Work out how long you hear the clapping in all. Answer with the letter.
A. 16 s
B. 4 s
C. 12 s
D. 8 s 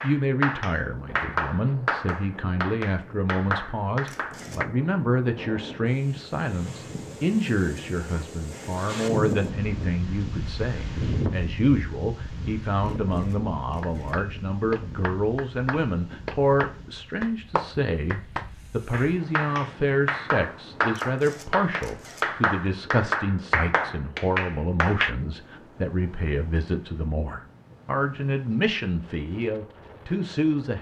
A.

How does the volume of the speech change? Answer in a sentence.
The volume of the speech stays about the same.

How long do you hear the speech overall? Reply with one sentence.
You can hear the speech for 31 seconds altogether.